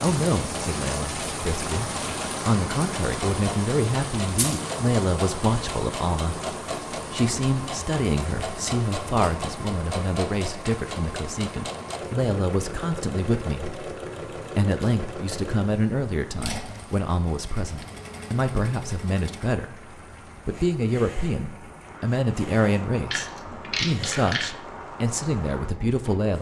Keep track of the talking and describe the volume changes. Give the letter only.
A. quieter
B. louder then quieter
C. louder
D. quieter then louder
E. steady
E.